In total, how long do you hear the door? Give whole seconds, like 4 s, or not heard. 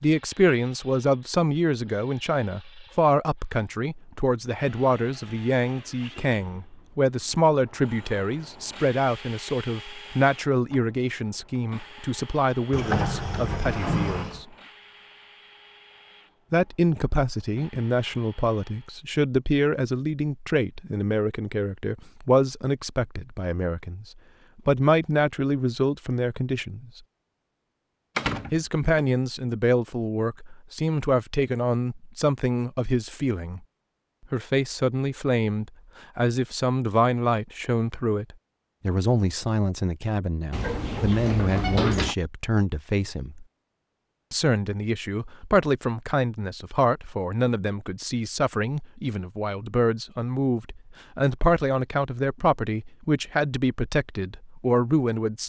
4 s.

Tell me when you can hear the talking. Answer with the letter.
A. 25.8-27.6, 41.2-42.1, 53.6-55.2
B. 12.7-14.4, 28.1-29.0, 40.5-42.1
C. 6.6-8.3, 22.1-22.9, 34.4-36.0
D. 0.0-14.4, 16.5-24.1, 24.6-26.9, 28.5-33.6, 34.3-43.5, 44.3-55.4
D.